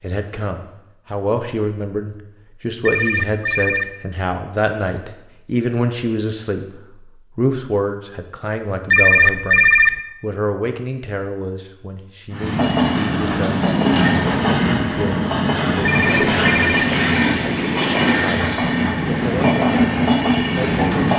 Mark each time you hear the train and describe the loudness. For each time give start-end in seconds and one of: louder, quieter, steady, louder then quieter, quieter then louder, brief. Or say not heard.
12.3-21.1 steady.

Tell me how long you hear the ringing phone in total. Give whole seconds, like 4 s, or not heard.
3 s.